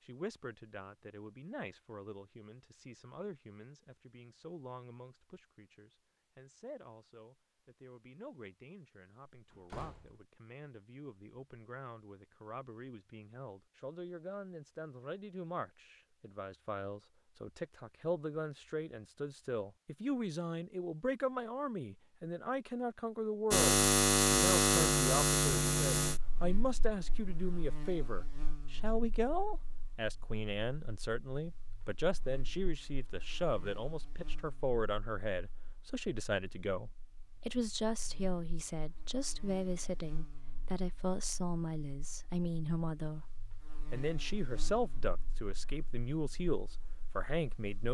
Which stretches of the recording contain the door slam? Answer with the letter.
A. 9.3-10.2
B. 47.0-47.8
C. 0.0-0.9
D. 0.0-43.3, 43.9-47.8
A.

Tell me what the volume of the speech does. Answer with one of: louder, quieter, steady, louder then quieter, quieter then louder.
louder.